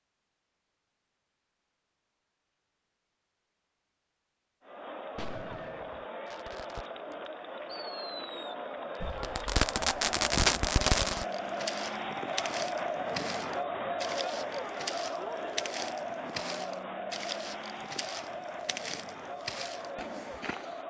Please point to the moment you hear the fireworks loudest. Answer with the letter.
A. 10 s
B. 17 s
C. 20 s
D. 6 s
A.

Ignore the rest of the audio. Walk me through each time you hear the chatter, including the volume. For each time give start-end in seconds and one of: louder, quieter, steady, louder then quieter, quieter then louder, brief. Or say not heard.
4.6-20.8 louder then quieter.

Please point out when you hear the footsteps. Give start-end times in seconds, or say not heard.
9.0-20.8.